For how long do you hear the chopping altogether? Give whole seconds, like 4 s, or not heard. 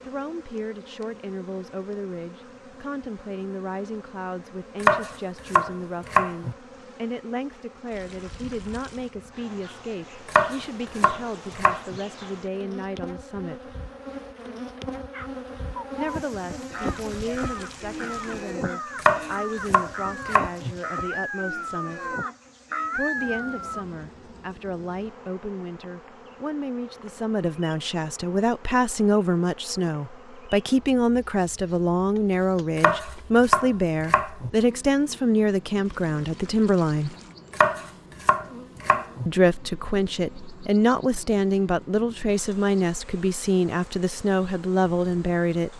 9 s.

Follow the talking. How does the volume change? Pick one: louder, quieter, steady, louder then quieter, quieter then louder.
louder.